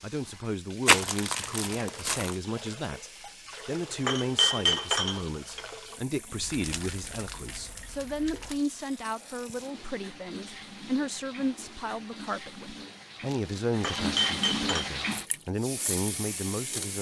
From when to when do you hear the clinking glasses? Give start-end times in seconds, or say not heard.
4.0-5.6, 13.8-14.9.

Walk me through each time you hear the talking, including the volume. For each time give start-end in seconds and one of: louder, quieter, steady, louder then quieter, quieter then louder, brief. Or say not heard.
0.0-16.9 steady.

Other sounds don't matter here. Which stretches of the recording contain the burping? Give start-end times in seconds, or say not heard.
not heard.